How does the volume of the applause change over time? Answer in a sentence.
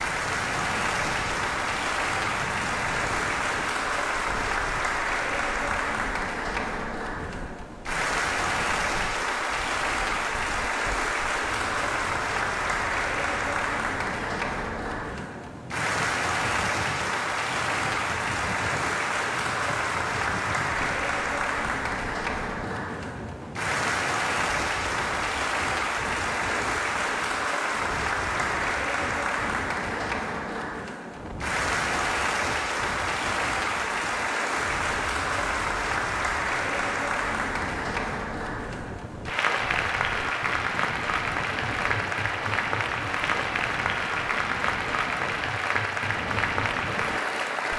The loudness of the applause stays about the same.